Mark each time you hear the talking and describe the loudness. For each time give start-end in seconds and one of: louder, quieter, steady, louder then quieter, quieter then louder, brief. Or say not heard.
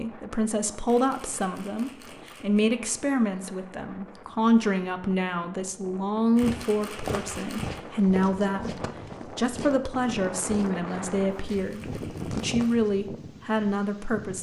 0.0-14.3 steady.